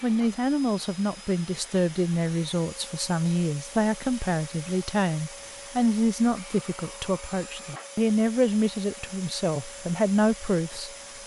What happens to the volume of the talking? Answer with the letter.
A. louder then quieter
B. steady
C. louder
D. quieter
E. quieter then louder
B.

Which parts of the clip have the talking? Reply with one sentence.
The talking can be heard from 0.0 to 11.2 s.